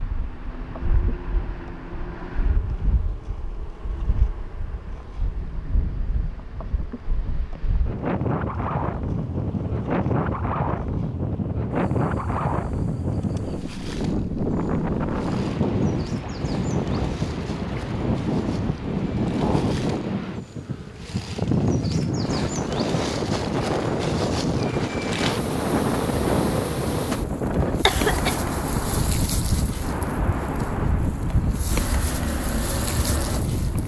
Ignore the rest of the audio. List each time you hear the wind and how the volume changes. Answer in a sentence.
You can hear the wind from 0.0 to 33.8 s, getting louder.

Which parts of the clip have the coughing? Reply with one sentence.
You can hear the coughing from 27.6 to 28.4 s.